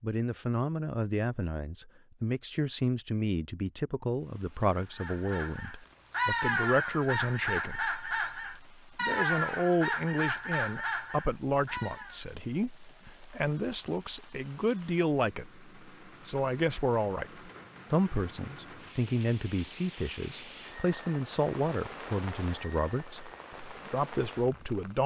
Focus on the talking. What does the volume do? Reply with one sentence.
The volume of the talking stays about the same.